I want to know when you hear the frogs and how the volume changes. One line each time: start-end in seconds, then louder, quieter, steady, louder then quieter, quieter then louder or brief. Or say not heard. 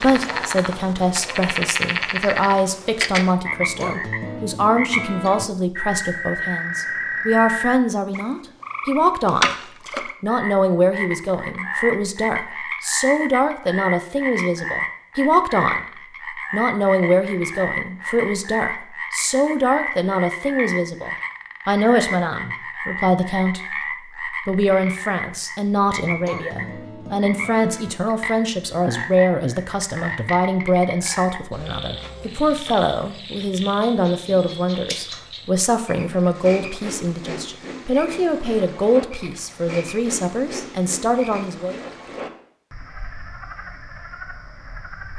0.0-45.1 quieter.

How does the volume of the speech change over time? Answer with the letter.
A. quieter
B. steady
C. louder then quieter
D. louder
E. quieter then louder
B.